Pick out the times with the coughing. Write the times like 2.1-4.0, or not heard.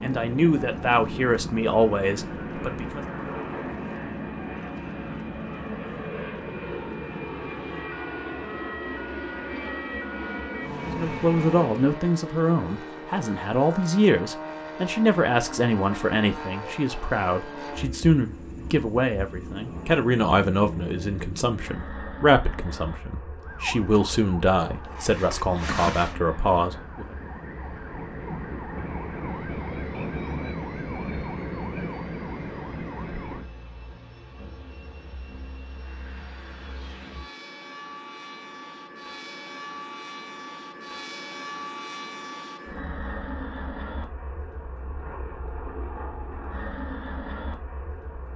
24.8-26.1.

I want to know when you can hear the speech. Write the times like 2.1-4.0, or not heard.
0.0-3.0, 10.8-27.1.